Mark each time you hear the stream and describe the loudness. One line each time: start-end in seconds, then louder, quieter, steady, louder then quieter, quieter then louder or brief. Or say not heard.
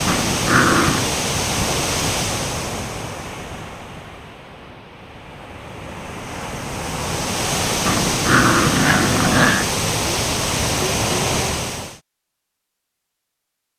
0.0-12.0 quieter then louder.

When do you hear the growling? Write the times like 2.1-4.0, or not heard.
0.1-1.1, 7.8-9.8.